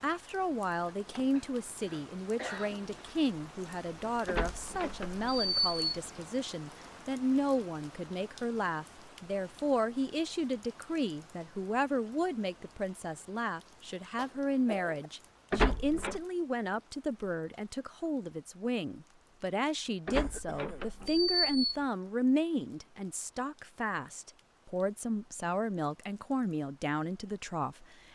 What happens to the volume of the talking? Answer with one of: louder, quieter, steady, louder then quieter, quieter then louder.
steady.